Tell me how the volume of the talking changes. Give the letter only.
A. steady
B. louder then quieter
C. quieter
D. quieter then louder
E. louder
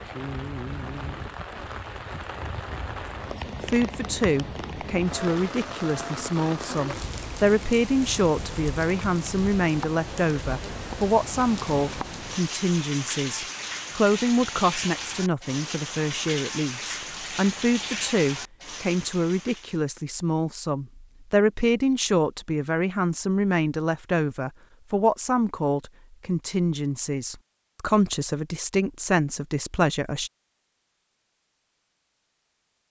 A.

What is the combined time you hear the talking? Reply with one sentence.
The talking can be heard for 27 seconds in total.